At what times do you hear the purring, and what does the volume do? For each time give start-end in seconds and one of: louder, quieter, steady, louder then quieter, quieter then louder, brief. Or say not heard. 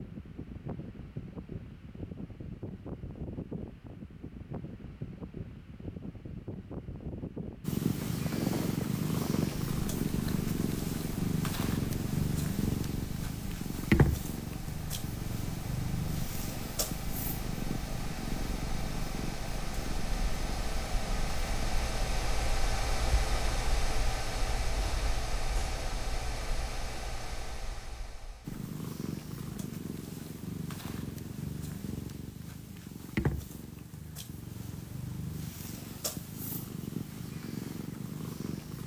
7.6-22.2 quieter
28.4-38.8 steady.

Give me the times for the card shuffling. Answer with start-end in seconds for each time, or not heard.
not heard.